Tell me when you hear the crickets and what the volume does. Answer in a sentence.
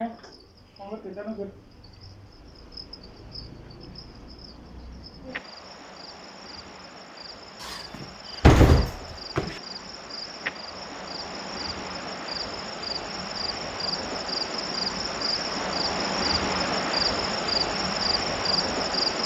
You can hear the crickets from 0.0 to 19.2 s, getting louder.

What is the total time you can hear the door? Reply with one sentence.
The door can be heard for 2 seconds in total.